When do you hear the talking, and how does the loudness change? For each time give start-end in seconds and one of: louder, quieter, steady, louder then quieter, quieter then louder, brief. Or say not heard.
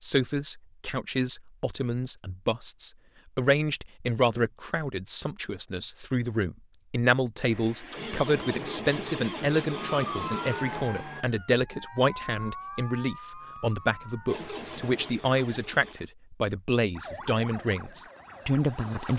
0.0-19.1 steady.